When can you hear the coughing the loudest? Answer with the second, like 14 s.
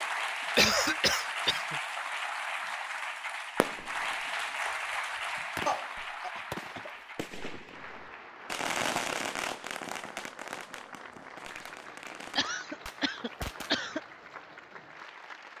1 s.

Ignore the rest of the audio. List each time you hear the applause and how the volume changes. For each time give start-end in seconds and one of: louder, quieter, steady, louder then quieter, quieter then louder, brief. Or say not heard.
0.0-15.5 quieter.